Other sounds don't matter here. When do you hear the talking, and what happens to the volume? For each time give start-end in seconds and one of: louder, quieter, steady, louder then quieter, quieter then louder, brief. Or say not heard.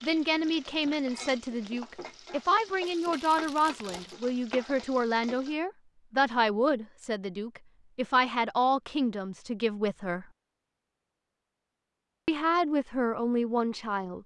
0.0-10.2 steady
12.2-14.2 brief.